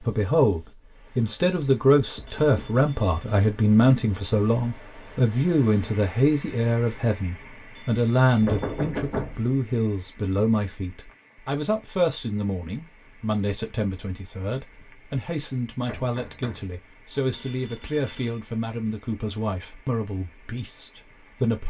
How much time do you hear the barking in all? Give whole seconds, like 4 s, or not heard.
not heard.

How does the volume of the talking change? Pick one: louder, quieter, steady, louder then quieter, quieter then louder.
quieter.